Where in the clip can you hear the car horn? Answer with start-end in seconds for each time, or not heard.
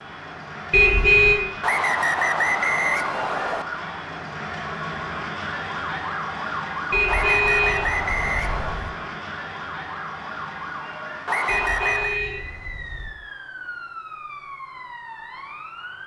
0.7-1.4, 6.9-8.9, 11.4-13.2.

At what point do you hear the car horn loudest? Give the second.
1 s.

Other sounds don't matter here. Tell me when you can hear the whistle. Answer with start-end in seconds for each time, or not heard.
1.6-3.6, 7.0-8.8, 11.2-12.2.